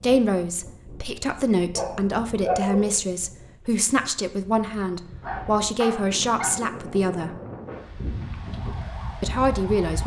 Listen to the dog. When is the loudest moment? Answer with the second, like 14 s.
3 s.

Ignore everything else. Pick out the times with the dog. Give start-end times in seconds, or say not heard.
1.8-3.0, 5.2-6.7.